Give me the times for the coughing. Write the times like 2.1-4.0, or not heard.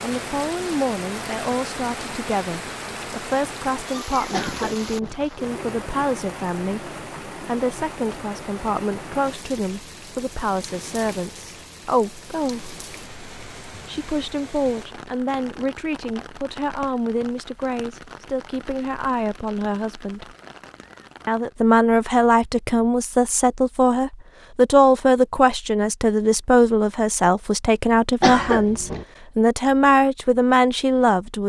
4.3-5.2, 28.2-29.1.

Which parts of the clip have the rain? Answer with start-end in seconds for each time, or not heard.
0.0-21.6.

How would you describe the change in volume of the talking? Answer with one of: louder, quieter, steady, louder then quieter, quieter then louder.
louder.